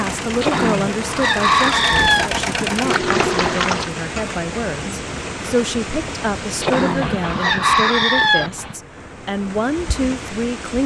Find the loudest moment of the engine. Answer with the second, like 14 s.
3 s.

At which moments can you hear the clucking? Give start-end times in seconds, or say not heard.
0.4-2.3, 6.6-8.5.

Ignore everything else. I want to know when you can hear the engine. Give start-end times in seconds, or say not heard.
0.0-3.9, 6.9-8.8.